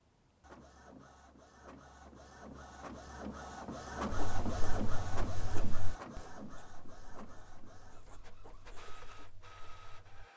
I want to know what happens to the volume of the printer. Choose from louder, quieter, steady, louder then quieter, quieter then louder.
louder then quieter.